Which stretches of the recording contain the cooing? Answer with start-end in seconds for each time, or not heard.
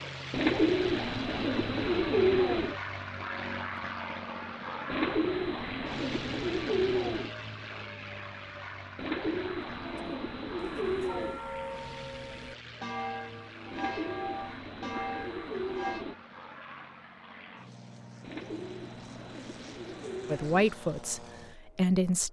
0.3-2.8, 4.8-7.3, 8.9-11.4, 13.7-16.1, 18.2-20.7.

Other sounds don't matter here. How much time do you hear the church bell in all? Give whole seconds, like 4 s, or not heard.
6 s.